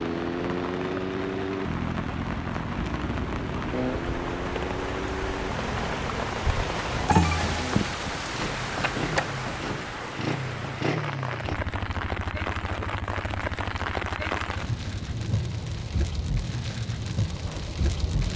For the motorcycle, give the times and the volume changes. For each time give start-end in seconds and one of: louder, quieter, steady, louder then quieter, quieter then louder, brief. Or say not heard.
0.0-18.3 quieter.